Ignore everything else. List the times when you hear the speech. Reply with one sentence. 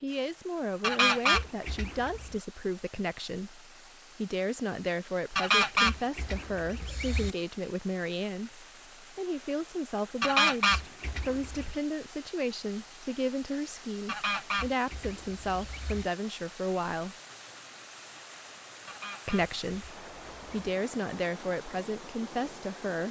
You can hear the speech from 0.0 to 17.1 s and from 19.2 to 23.0 s.